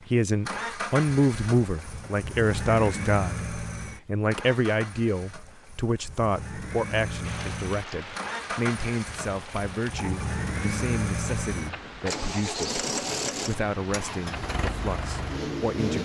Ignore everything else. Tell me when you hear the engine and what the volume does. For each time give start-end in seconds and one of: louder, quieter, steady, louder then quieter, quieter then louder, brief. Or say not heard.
0.0-16.0 quieter then louder.